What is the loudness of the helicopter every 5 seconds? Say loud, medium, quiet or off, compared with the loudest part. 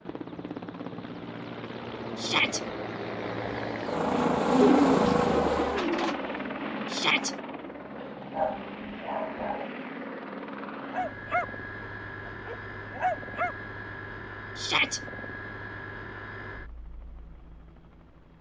loud, loud, medium, quiet.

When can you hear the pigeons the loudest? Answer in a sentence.
The loudest moment of the pigeons is at 5 seconds.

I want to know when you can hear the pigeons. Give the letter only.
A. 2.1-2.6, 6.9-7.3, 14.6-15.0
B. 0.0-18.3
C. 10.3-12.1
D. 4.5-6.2
D.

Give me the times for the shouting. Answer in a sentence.
You can hear the shouting from 2.1 to 2.6 s, from 6.9 to 7.3 s and from 14.6 to 15.0 s.